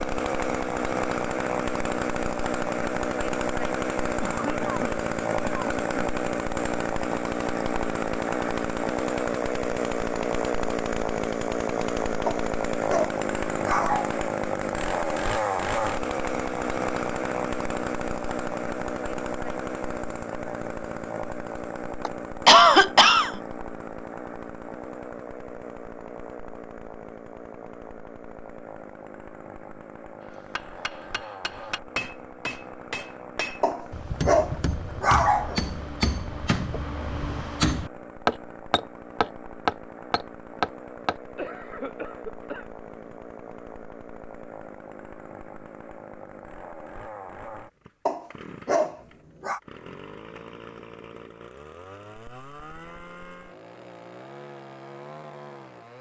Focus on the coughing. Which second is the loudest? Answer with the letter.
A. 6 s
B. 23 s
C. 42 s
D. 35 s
B.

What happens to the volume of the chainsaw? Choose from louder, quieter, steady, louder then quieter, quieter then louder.
quieter.